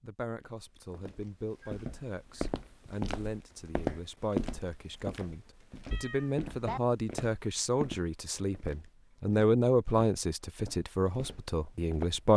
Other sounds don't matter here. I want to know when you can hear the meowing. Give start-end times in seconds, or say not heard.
5.9-6.8.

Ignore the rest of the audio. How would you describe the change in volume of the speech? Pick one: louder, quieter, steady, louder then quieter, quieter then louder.
louder.